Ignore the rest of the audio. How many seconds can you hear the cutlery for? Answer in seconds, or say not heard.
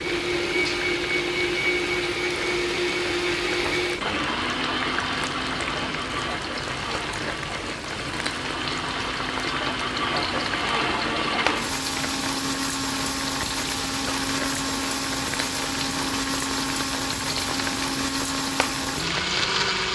not heard.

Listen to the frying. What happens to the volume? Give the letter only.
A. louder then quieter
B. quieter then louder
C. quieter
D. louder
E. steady
E.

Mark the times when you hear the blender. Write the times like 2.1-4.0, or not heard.
0.0-19.8.